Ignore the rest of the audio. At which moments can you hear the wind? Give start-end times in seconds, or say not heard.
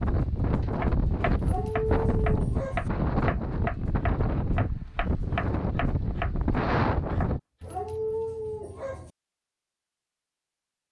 0.0-7.4.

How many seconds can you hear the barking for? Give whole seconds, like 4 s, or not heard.
3 s.